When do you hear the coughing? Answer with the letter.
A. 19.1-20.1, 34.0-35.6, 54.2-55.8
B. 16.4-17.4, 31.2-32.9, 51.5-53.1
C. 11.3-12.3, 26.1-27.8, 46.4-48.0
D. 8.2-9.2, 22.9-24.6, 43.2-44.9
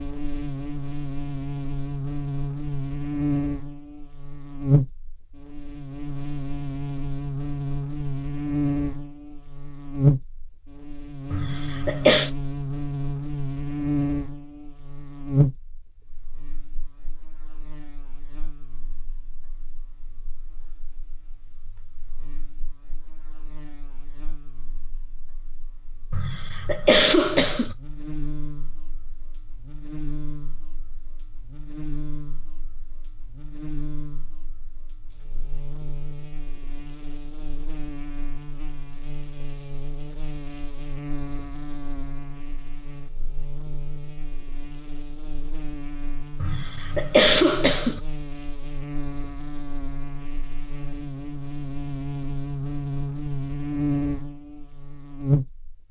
C.